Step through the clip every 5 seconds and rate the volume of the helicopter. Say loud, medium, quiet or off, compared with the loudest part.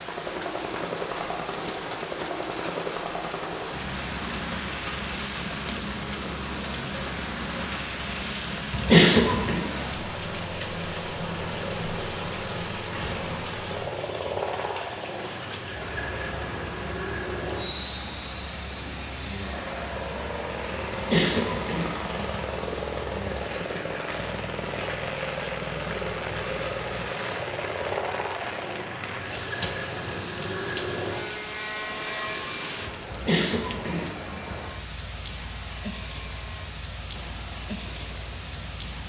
loud, loud, loud, loud, loud, loud, loud, quiet.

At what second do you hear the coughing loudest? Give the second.
9 s.